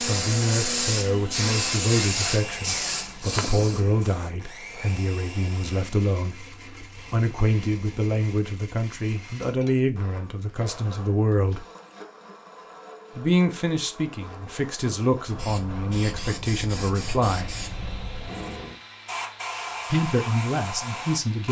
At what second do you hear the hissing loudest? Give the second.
2 s.